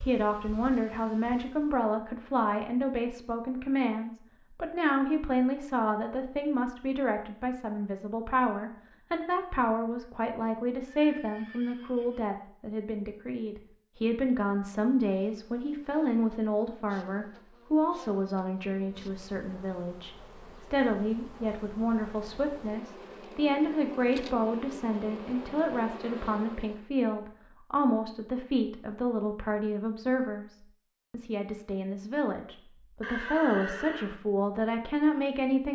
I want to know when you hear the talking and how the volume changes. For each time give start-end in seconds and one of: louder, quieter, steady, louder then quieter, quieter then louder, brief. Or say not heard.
0.1-35.7 steady.